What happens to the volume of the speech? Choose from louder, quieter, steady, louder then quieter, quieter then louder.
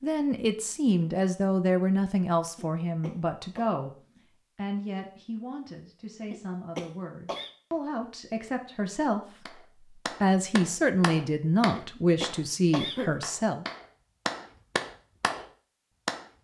quieter then louder.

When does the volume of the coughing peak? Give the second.
13 s.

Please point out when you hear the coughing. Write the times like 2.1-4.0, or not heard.
2.5-3.7, 6.3-7.5, 11.8-13.2.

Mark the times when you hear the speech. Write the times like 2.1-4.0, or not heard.
0.0-3.9, 4.5-13.7.